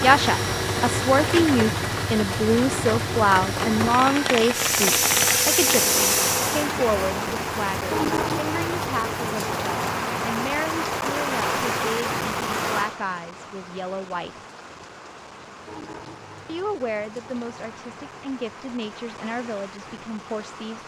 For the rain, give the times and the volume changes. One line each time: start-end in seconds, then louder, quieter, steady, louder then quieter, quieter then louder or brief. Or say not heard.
0.0-20.8 quieter.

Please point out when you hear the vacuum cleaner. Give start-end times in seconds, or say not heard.
0.0-6.7.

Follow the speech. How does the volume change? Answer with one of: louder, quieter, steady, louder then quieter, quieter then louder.
quieter.